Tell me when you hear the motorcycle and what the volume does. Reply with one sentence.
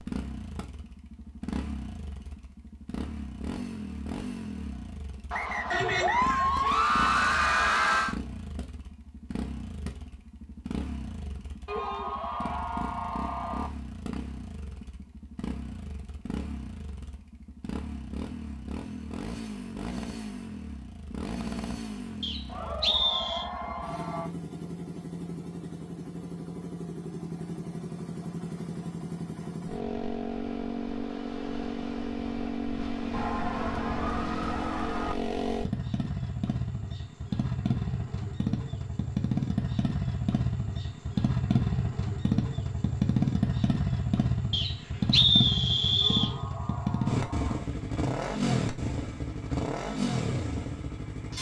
The motorcycle can be heard from 0.0 to 51.3 s, getting louder.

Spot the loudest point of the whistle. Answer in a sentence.
The volume of the whistle peaks at 45 seconds.